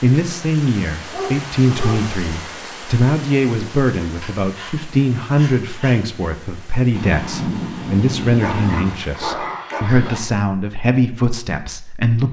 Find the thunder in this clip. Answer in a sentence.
You can hear the thunder from 6.9 to 8.9 s.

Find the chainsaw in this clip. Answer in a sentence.
The chainsaw can't be heard in this clip.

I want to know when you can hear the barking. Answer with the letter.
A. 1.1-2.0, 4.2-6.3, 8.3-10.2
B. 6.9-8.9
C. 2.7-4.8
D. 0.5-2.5
A.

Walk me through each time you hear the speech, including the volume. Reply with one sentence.
You can hear the speech from 0.0 to 12.2 s, at a steady volume.